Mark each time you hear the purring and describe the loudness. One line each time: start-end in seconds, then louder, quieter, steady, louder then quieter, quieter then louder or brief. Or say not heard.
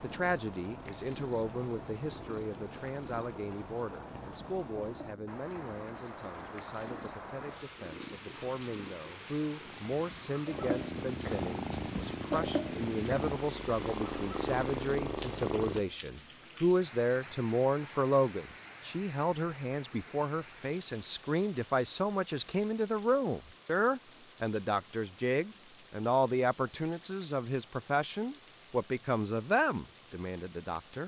0.0-15.8 louder.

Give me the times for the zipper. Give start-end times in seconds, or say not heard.
not heard.